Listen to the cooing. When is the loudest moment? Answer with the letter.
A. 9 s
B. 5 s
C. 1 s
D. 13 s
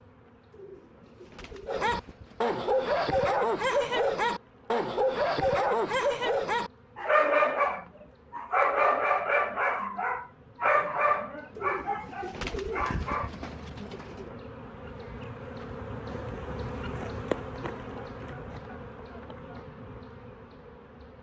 D.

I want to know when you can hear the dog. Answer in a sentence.
The dog can be heard from 1.6 to 13.3 s.